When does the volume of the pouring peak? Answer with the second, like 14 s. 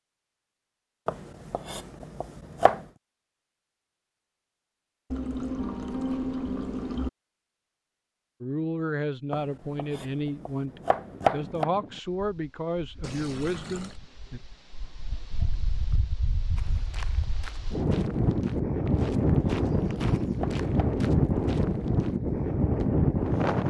6 s.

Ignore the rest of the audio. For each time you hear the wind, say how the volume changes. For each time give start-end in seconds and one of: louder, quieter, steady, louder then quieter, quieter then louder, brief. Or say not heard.
10.7-23.6 louder.